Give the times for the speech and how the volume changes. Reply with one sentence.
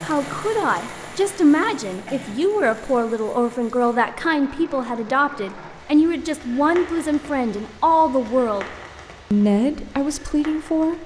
You can hear the speech from 0.0 to 8.7 s, at a steady volume; and briefly from 9.3 to 11.0 s.